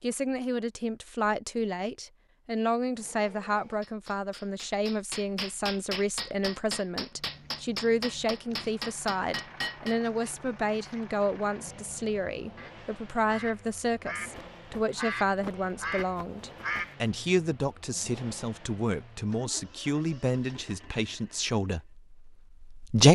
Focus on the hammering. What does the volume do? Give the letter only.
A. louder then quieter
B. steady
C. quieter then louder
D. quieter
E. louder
E.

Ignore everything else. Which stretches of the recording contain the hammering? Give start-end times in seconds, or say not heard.
3.0-10.0.